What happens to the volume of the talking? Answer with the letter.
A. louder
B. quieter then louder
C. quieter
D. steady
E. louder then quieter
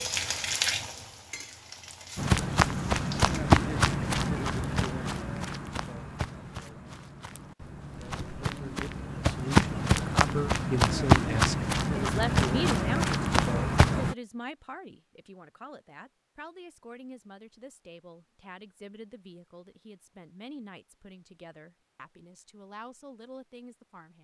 C.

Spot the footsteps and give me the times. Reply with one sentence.
The footsteps can be heard from 2.1 to 14.2 s.